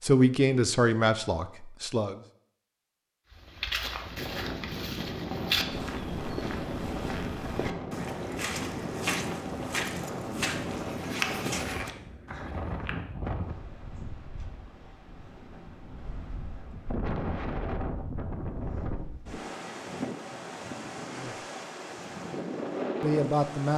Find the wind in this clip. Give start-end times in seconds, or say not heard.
4.2-23.7.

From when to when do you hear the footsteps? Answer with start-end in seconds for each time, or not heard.
3.3-13.0.